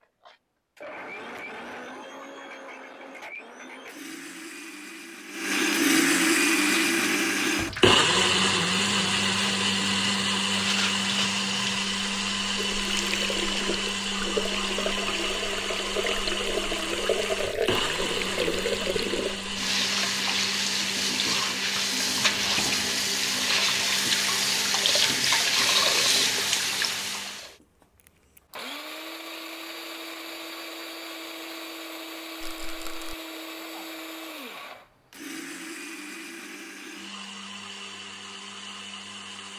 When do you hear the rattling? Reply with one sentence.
The rattling can be heard from 32.4 to 33.1 s.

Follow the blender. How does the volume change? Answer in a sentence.
The volume of the blender goes down.